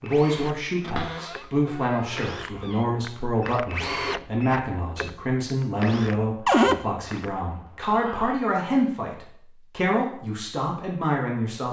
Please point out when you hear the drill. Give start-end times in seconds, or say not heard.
0.0-8.4.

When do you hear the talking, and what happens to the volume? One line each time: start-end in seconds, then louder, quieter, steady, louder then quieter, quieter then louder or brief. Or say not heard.
0.0-11.6 steady.